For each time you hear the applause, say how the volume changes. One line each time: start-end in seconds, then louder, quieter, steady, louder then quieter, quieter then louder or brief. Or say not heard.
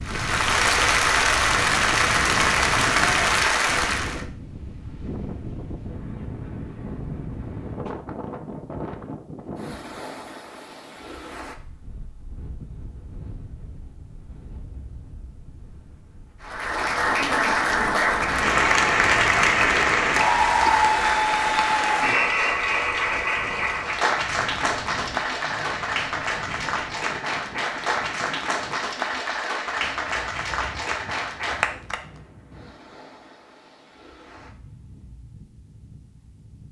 0.0-4.2 steady
16.4-32.0 quieter.